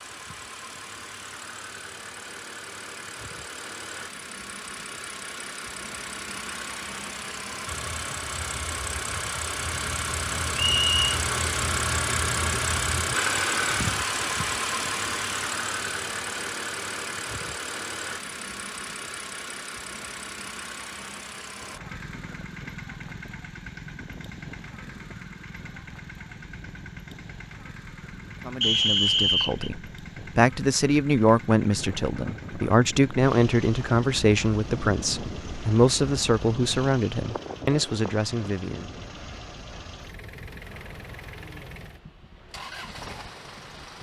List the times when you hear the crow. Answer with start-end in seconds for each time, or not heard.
not heard.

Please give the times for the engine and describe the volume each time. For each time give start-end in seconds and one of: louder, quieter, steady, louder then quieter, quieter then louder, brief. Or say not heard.
0.0-43.9 louder then quieter.